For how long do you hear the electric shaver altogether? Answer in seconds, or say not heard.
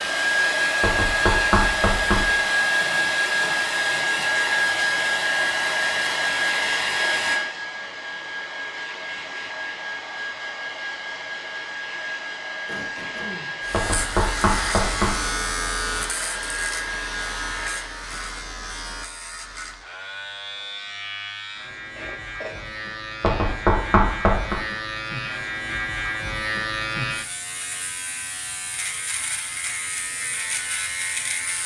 18 s.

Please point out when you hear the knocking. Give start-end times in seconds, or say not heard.
0.8-2.3, 13.7-15.2, 23.2-24.6.